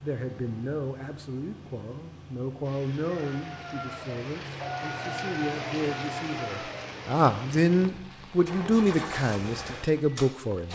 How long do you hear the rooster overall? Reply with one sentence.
You can hear the rooster for 4 seconds altogether.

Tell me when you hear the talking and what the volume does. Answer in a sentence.
The talking can be heard from 0.0 to 10.7 s, getting louder.